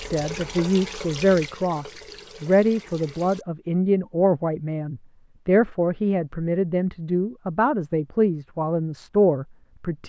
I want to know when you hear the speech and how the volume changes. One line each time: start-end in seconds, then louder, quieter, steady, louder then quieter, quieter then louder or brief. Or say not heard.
0.0-10.0 steady.